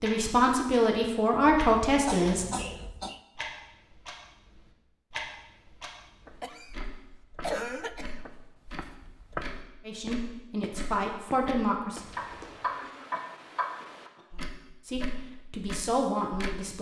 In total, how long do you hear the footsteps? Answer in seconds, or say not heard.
7 s.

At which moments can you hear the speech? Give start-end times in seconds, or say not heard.
0.0-2.6, 9.8-12.0, 14.8-16.7.